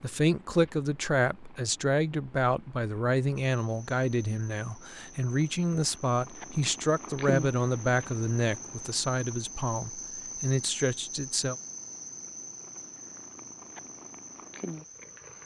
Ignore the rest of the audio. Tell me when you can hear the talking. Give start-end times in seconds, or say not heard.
0.0-11.6.